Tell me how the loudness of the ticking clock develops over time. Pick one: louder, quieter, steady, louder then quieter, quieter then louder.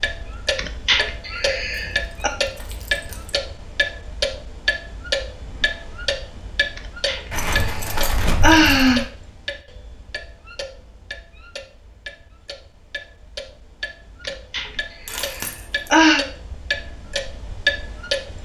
quieter then louder.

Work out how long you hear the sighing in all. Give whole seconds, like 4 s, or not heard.
6 s.